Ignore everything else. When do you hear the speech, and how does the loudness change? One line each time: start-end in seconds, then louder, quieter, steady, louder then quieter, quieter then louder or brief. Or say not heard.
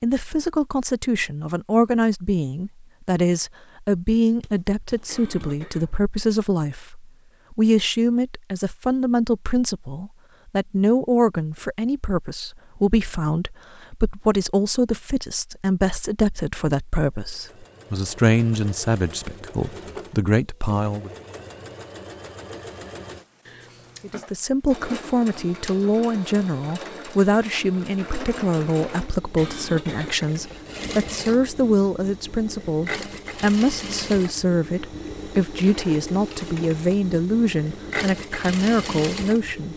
0.0-21.1 steady
24.0-39.7 steady.